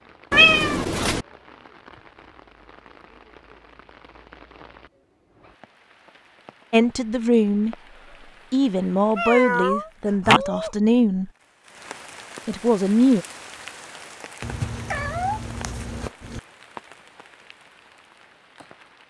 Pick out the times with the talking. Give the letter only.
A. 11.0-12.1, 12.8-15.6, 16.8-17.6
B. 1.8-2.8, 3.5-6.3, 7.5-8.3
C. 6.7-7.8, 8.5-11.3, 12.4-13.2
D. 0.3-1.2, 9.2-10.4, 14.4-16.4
C.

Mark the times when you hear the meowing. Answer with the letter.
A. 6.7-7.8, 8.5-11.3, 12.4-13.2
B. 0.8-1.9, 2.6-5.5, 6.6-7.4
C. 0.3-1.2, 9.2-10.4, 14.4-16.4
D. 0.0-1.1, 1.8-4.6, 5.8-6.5
C.